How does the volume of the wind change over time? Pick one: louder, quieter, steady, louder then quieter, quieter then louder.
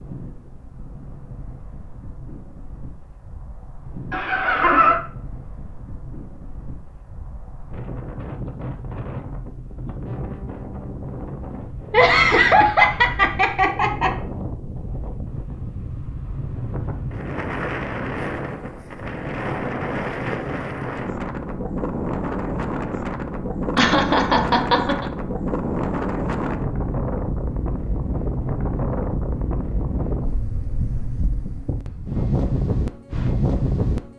louder.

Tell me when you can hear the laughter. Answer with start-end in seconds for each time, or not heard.
4.1-5.0, 11.9-14.1, 23.8-25.1.